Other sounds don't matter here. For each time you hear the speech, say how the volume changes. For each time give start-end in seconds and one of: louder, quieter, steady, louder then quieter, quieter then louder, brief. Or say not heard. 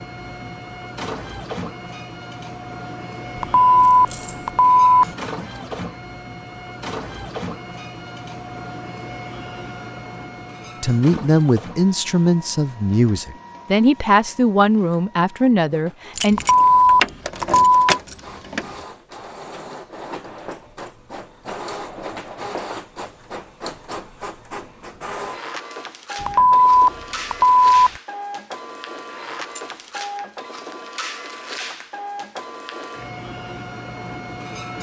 10.8-16.4 steady.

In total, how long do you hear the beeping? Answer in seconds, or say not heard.
5 s.